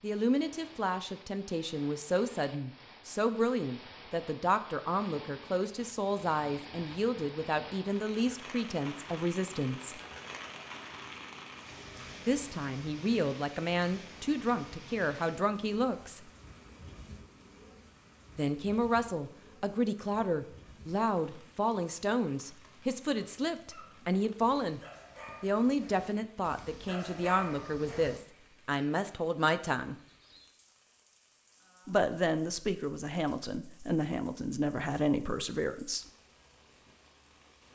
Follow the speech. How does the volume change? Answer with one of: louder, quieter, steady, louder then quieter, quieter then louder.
steady.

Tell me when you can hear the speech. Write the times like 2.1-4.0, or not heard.
0.0-10.0, 12.2-16.2, 18.4-24.8, 25.4-29.9, 31.9-36.0.